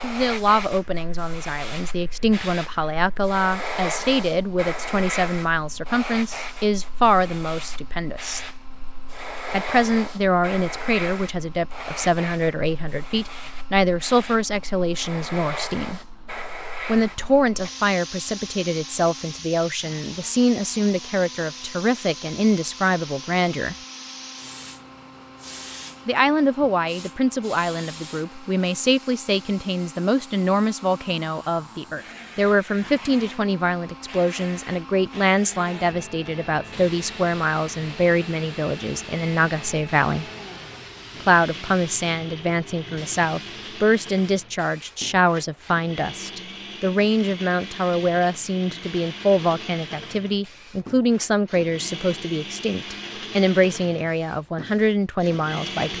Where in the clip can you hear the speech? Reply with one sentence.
The speech can be heard from 0.0 to 8.5 s, from 9.5 to 16.0 s, from 16.9 to 23.8 s, from 26.1 to 40.2 s and from 41.2 to 55.9 s.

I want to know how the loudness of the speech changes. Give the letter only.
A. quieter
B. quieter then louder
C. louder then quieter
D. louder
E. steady
E.